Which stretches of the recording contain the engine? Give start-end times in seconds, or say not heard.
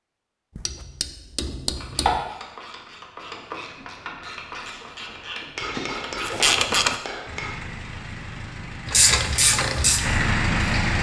7.2-10.9.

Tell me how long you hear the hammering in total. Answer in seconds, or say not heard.
4 s.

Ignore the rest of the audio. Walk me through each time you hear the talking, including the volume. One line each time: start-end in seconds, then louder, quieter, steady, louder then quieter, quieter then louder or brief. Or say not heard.
not heard.